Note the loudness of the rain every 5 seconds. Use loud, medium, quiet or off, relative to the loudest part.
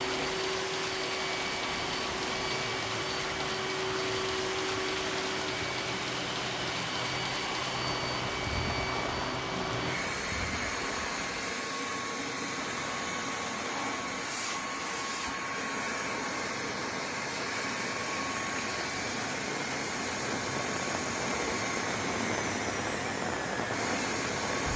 loud, loud, medium, medium, loud.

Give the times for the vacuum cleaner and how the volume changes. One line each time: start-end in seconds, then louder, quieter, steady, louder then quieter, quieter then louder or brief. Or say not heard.
0.0-24.7 steady.